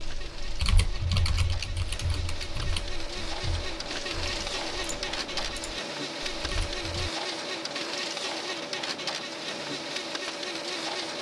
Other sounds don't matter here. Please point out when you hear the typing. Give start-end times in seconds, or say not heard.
0.0-7.1.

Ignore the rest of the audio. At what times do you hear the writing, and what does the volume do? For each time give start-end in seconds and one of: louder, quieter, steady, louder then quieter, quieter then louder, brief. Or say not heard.
not heard.